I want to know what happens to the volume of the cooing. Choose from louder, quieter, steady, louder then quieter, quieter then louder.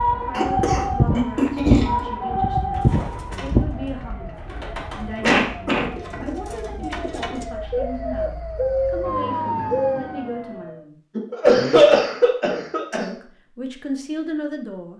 louder.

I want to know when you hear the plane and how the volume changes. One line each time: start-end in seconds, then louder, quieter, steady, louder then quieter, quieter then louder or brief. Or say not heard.
not heard.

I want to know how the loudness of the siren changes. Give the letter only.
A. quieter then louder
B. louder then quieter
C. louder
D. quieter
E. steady
A.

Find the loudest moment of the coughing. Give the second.
12 s.